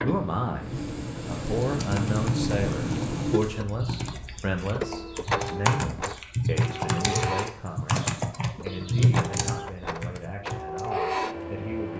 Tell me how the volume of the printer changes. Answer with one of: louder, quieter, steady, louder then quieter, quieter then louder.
steady.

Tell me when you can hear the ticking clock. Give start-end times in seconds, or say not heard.
not heard.